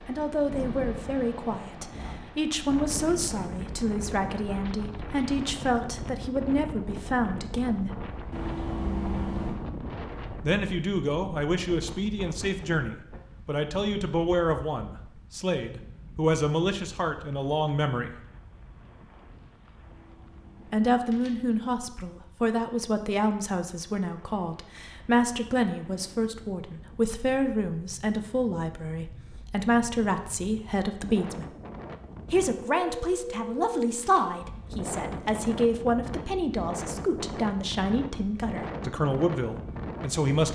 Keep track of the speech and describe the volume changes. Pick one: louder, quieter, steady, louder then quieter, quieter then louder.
steady.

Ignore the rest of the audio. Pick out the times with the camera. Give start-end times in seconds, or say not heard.
8.3-9.6, 19.8-21.5, 32.8-34.5.